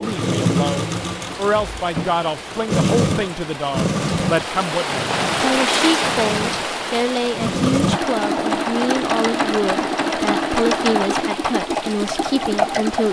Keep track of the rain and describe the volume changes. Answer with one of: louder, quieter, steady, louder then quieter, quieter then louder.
louder then quieter.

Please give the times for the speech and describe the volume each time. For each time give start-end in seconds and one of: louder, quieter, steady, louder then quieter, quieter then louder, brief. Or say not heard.
0.0-13.0 steady.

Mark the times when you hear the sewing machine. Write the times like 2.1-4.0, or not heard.
0.0-13.0.